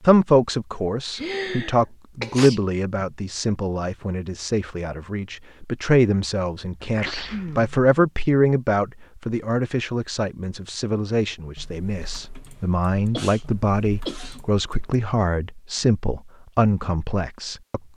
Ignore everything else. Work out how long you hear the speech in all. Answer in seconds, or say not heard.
18 s.